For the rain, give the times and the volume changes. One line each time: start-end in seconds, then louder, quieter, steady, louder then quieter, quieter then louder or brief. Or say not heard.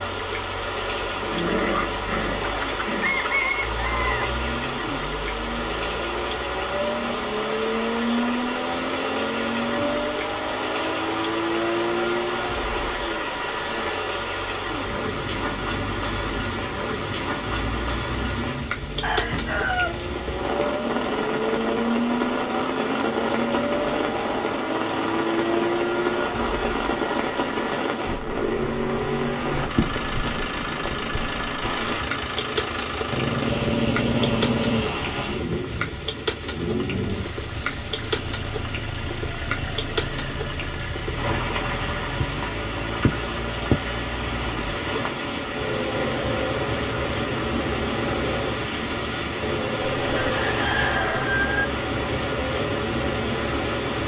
0.0-54.0 steady.